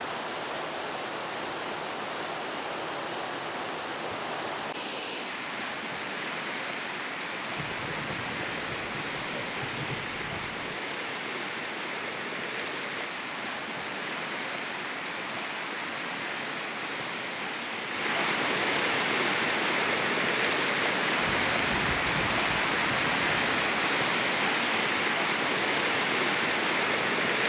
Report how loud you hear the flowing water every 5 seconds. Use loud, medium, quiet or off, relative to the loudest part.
medium, medium, medium, loud, loud, loud.